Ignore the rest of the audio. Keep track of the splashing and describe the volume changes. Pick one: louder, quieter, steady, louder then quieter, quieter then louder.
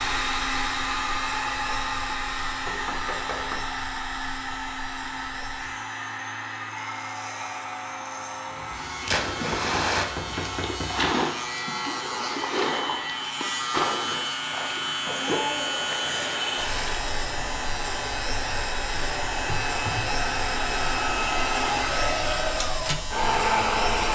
quieter.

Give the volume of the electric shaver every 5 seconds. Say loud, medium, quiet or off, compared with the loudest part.
medium, medium, loud, loud, loud.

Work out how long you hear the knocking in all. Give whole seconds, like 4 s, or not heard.
4 s.